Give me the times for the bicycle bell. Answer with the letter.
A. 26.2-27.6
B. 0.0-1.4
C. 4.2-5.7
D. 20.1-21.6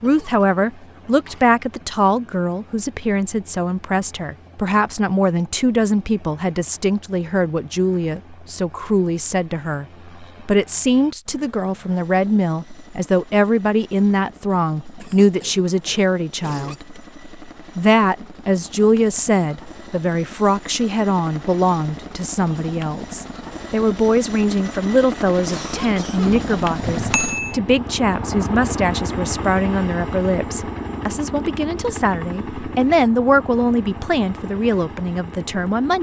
A.